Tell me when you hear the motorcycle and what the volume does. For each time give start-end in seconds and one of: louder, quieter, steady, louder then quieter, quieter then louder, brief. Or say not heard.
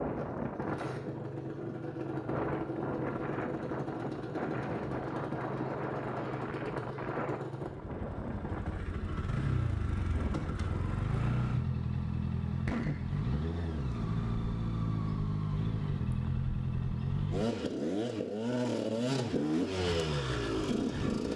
0.0-21.3 louder.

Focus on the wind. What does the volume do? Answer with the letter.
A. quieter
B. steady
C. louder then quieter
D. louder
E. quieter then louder
A.